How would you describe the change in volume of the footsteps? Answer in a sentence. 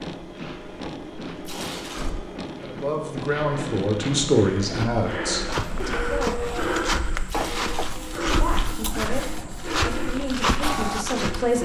The loudness of the footsteps goes up.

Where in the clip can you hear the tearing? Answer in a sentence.
You can hear the tearing from 1.4 to 2.1 s and from 7.2 to 8.3 s.